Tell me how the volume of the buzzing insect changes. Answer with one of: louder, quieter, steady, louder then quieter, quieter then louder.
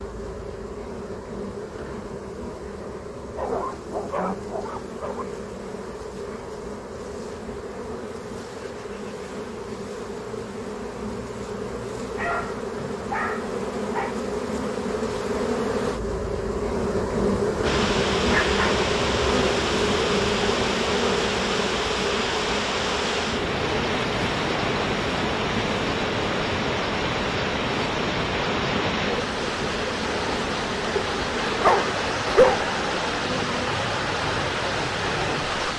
louder then quieter.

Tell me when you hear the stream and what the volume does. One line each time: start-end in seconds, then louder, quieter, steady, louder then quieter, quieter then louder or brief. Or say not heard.
17.6-35.7 steady.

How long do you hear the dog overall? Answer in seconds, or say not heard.
6 s.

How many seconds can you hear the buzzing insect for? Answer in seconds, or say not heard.
36 s.